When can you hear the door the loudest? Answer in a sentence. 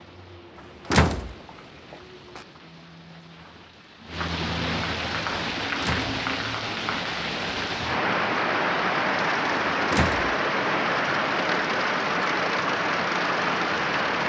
The loudest moment of the door is at 1 second.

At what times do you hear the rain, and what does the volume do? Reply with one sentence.
The rain can be heard from 0.0 to 14.2 s, getting louder.